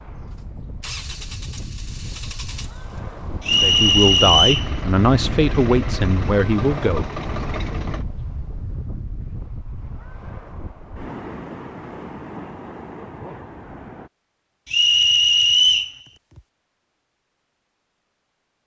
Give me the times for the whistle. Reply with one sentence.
The whistle can be heard from 3.5 to 4.7 s and from 14.7 to 15.9 s.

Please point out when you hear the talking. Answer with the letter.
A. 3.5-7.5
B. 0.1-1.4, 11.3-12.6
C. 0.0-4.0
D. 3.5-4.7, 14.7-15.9
A.